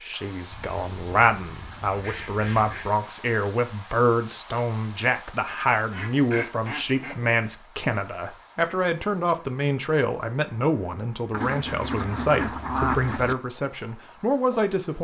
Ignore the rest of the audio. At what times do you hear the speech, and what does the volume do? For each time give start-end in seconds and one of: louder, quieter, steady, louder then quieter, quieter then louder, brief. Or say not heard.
0.0-15.0 steady.